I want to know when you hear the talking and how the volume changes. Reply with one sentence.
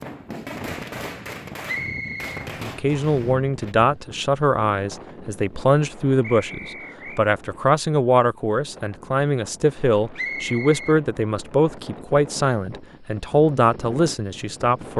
The talking can be heard from 2.6 to 14.9 s, at a steady volume.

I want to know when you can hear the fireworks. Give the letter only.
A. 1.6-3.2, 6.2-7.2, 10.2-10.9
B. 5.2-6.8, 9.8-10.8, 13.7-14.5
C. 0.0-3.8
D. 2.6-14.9
C.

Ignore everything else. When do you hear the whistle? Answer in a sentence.
The whistle can be heard from 1.6 to 3.2 s, from 6.2 to 7.2 s and from 10.2 to 10.9 s.